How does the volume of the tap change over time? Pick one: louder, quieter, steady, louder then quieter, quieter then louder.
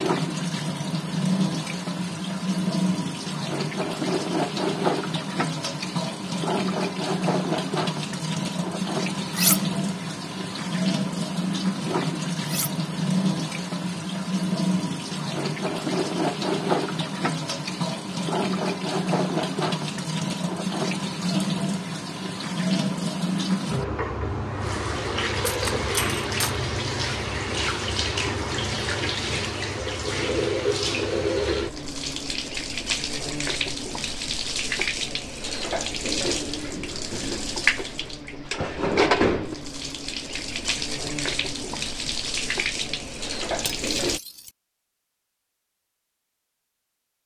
steady.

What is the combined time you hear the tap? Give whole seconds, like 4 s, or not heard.
44 s.